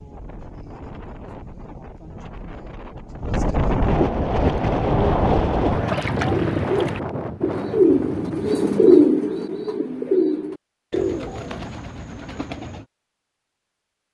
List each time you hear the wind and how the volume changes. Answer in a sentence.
You can hear the wind from 0.0 to 9.1 s, getting louder then quieter.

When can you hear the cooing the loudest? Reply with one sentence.
The volume of the cooing peaks at 9 seconds.